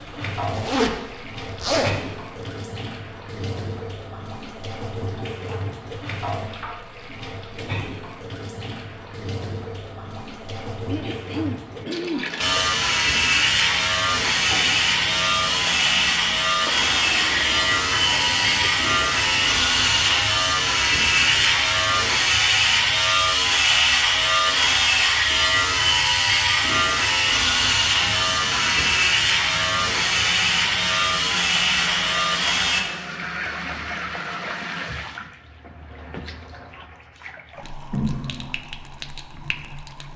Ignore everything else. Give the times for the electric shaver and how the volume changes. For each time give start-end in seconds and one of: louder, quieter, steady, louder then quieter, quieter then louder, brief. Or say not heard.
12.4-32.9 steady.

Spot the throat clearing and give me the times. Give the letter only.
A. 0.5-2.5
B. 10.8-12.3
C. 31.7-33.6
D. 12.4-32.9
B.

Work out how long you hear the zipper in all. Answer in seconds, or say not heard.
2 s.